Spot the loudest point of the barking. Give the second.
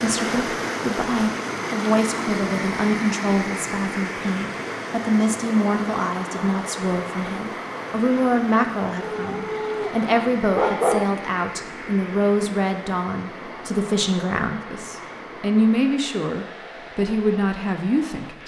11 s.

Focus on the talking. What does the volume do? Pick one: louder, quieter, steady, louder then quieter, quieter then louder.
steady.